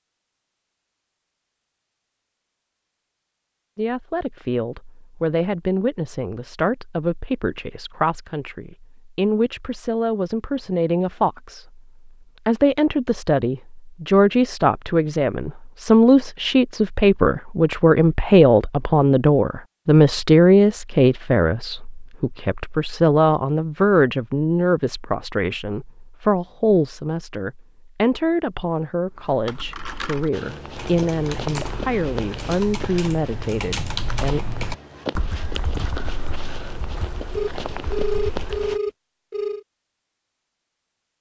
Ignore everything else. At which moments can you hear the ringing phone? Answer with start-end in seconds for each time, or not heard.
37.4-39.6.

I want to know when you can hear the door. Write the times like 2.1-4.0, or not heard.
not heard.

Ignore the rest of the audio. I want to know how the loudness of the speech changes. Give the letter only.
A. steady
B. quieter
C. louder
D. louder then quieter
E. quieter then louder
D.